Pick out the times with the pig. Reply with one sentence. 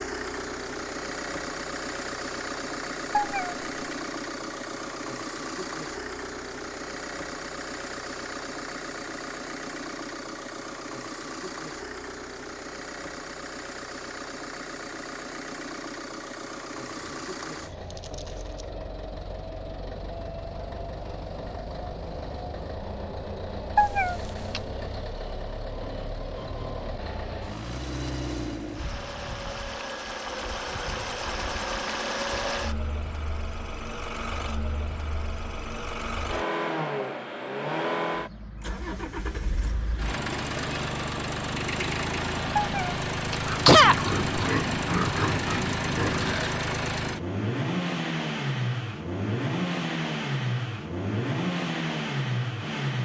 The pig can be heard from 16.9 to 18.7 s and from 43.4 to 46.4 s.